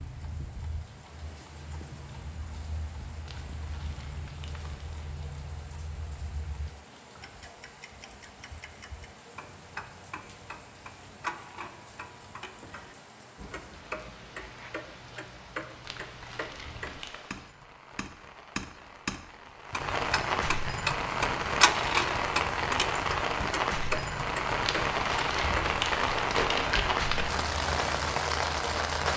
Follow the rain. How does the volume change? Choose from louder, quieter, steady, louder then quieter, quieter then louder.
louder.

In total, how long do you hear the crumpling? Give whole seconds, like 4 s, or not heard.
6 s.